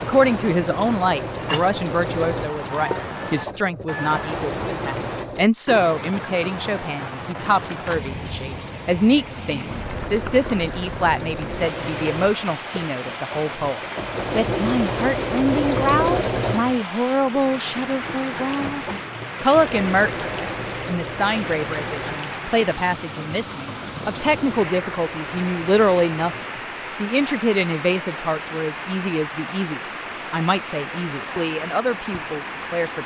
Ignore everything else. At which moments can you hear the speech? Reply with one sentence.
The speech can be heard from 0.0 to 26.4 s and from 27.0 to 33.0 s.